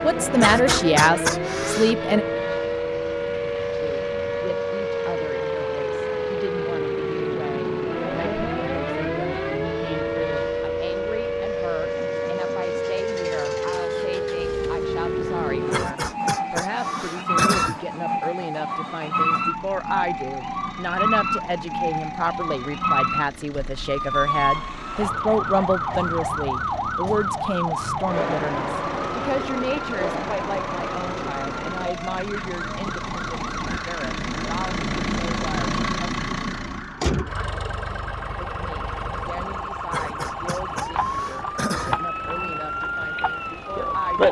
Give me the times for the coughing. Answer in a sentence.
You can hear the coughing from 0.4 to 1.9 s, from 15.7 to 17.8 s and from 39.9 to 42.0 s.